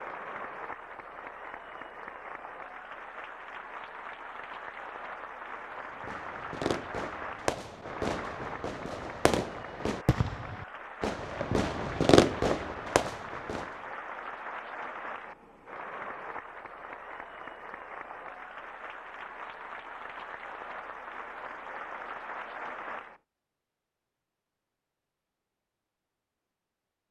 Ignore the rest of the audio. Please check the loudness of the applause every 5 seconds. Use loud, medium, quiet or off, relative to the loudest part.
loud, loud, loud, loud, loud, off.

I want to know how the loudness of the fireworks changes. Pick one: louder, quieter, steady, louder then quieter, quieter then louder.
louder.